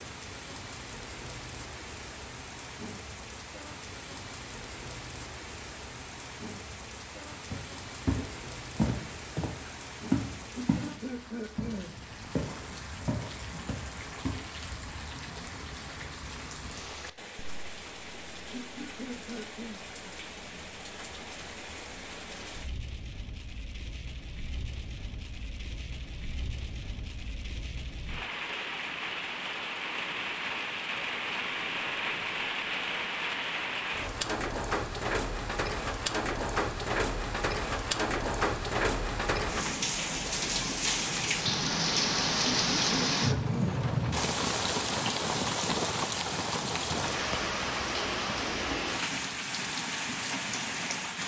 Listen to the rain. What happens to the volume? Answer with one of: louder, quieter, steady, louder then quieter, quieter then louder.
louder.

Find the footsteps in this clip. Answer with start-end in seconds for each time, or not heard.
7.5-10.9, 11.6-14.4.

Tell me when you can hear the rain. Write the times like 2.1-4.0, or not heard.
0.0-51.2.